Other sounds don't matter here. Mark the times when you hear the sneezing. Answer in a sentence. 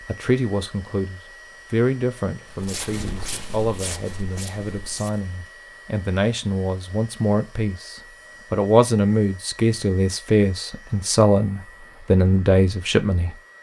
The sneezing can't be heard in this clip.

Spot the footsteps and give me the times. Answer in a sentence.
You can hear the footsteps from 2.5 to 5.2 s.